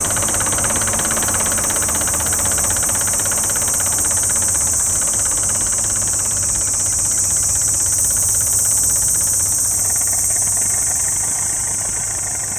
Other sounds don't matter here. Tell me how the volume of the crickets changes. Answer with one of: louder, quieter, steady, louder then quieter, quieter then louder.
steady.